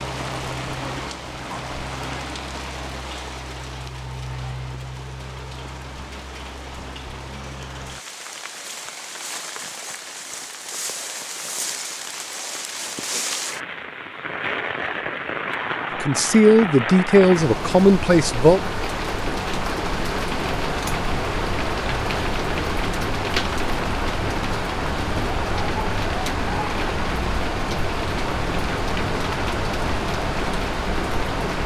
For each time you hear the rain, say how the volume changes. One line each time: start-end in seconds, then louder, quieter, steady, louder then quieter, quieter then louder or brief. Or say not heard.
0.0-31.6 louder.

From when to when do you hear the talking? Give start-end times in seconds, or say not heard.
16.0-18.6.